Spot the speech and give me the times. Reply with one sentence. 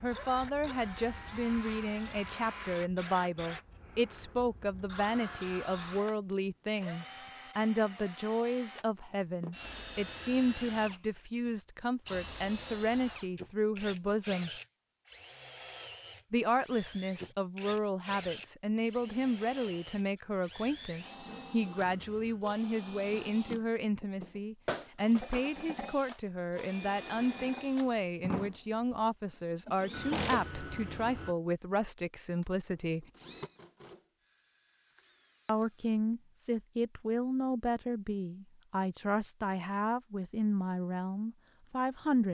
The speech can be heard from 0.0 to 14.5 s, from 16.3 to 33.0 s and from 35.5 to 42.2 s.